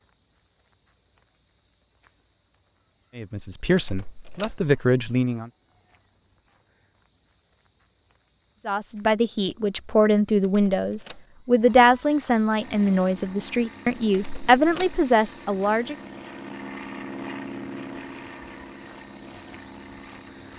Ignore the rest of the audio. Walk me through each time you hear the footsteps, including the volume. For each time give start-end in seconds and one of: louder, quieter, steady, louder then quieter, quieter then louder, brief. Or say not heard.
not heard.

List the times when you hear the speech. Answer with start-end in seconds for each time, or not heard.
3.1-5.5, 8.7-15.9.